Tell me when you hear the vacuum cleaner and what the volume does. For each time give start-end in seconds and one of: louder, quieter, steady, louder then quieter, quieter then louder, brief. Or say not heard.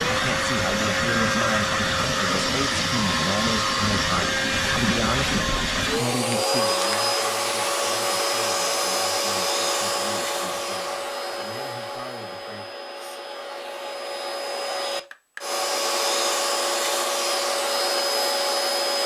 0.0-19.0 quieter then louder.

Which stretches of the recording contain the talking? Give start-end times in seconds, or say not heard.
0.1-12.7.